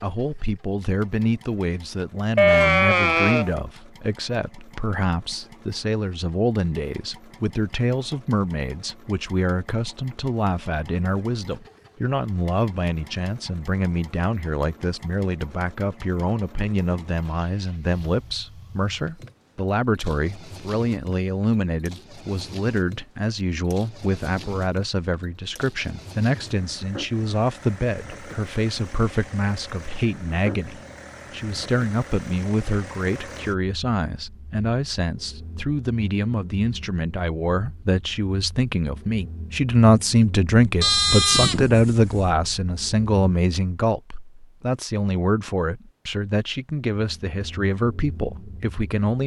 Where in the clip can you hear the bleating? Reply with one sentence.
The bleating can be heard from 2.4 to 3.5 s and from 40.8 to 42.2 s.